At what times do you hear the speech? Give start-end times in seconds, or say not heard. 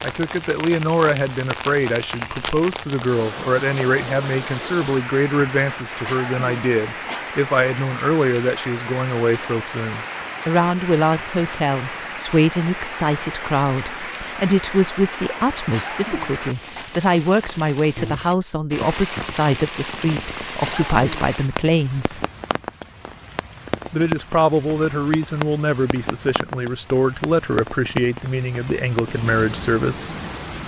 0.0-22.2, 23.9-30.1.